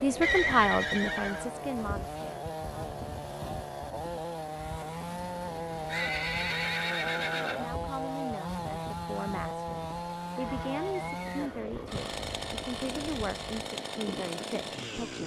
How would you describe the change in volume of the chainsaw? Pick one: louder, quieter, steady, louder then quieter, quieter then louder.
steady.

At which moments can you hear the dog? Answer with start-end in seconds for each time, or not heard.
not heard.